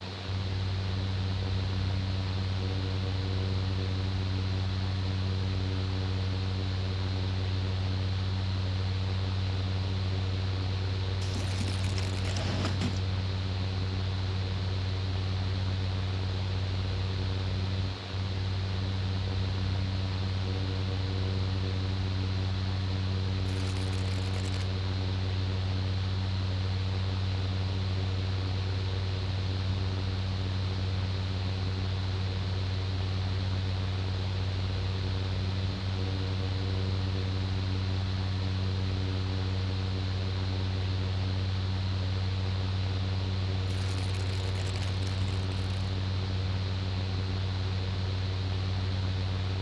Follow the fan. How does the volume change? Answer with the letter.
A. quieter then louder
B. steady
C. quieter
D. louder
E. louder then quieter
B.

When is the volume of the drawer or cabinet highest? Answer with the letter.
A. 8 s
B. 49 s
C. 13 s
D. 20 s
C.